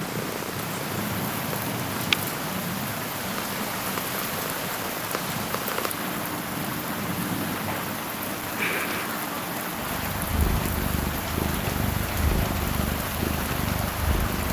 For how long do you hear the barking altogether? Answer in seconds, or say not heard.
not heard.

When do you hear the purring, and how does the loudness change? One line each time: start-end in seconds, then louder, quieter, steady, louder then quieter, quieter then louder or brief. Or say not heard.
0.0-14.4 quieter then louder.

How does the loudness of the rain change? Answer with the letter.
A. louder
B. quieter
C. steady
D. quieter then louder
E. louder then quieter
C.